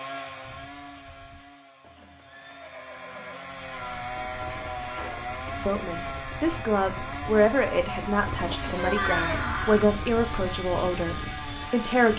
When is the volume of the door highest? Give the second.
9 s.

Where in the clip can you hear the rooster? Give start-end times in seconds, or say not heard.
not heard.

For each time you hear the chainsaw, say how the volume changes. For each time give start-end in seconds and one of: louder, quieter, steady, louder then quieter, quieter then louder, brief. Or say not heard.
0.0-12.1 louder.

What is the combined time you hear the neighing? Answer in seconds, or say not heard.
3 s.